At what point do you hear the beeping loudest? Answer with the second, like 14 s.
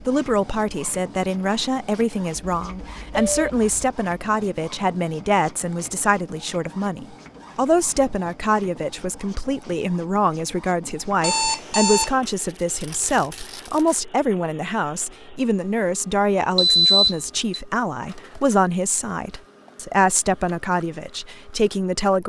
17 s.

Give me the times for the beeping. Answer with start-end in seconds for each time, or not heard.
2.4-3.6, 11.2-12.2, 16.6-17.6.